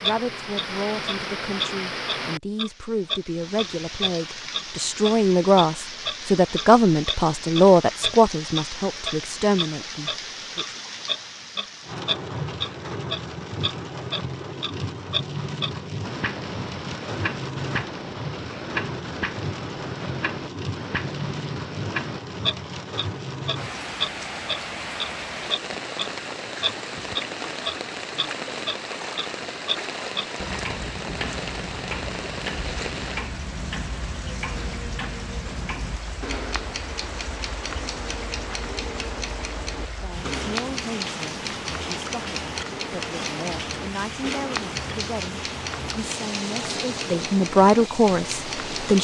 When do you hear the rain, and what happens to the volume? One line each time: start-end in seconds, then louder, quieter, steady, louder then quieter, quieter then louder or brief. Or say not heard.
0.0-49.0 steady.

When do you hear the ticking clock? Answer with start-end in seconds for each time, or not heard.
0.0-49.0.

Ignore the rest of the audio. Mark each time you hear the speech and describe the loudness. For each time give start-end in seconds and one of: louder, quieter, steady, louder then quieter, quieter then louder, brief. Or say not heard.
0.0-10.7 louder then quieter
40.0-49.0 louder.